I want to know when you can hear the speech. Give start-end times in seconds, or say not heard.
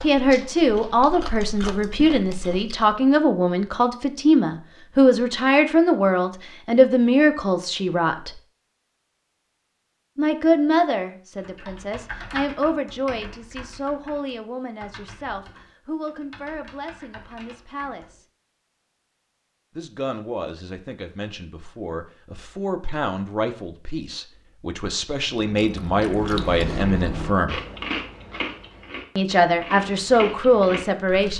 0.0-8.3, 10.2-18.2, 19.8-27.6, 29.1-31.3.